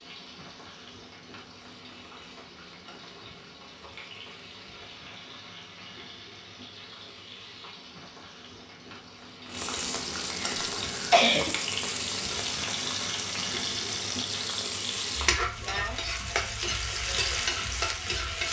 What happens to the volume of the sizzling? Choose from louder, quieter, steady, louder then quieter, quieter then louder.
louder.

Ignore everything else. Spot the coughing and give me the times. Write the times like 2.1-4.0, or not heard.
10.3-11.5.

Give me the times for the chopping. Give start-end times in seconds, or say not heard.
not heard.